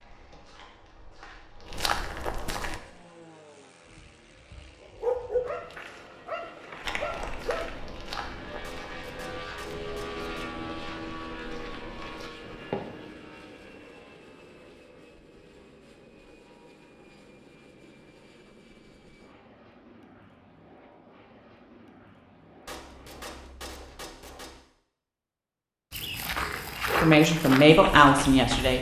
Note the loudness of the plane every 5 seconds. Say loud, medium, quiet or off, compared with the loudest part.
quiet, loud, loud, quiet, quiet, off.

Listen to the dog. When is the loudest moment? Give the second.
5 s.